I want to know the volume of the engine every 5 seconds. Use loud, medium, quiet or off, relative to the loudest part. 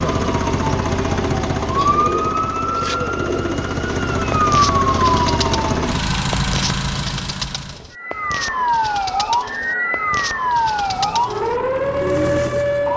loud, loud, medium.